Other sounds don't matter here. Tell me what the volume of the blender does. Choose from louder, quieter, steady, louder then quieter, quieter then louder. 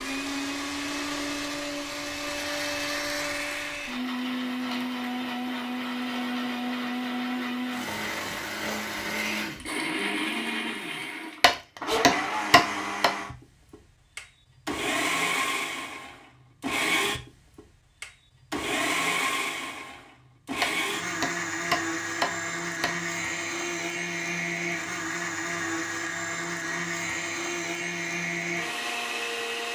steady.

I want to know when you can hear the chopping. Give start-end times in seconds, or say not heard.
11.4-13.1, 20.6-22.9.